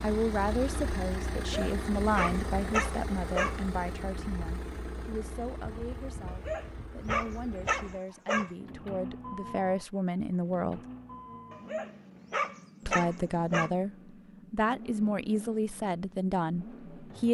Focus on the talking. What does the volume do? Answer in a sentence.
The volume of the talking goes down, then up.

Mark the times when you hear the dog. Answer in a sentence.
You can hear the dog from 1.5 to 3.6 s, from 6.2 to 8.5 s and from 11.5 to 13.7 s.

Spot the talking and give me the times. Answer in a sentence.
The talking can be heard from 0.0 to 10.8 s and from 12.8 to 17.2 s.